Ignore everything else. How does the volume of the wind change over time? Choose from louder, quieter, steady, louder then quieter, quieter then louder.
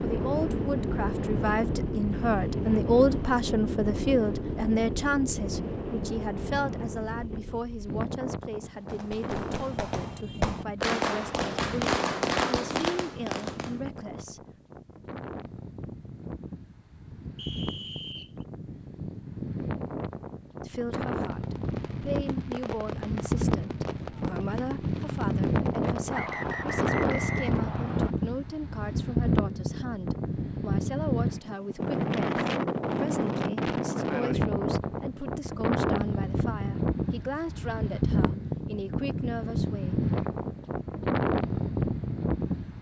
quieter then louder.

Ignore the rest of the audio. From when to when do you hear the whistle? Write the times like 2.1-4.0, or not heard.
17.4-18.4, 26.1-28.1.